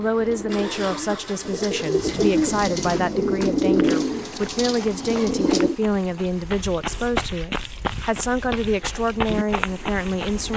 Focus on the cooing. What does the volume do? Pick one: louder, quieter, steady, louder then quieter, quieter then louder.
louder then quieter.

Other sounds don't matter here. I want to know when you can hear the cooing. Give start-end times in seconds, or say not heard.
0.0-5.8.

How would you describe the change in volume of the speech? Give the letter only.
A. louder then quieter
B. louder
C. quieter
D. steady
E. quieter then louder
D.